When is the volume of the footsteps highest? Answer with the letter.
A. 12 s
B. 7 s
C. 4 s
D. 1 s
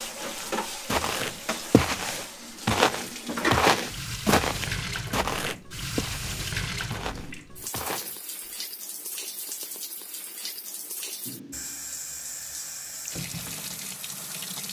C.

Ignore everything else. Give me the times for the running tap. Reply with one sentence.
You can hear the running tap from 0.0 to 14.6 s.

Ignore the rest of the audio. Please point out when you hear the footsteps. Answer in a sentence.
You can hear the footsteps from 0.4 to 8.2 s.